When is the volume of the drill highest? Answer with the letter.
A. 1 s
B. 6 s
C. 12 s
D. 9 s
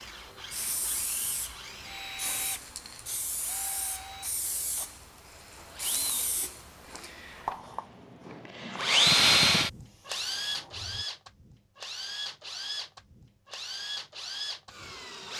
D.